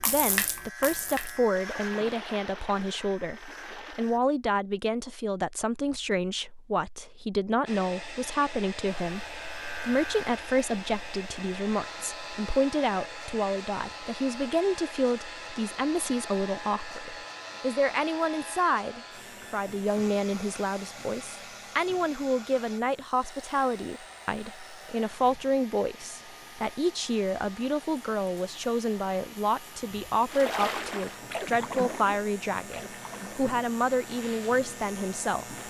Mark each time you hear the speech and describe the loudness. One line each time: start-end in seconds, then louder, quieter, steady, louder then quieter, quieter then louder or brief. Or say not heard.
0.0-35.5 steady.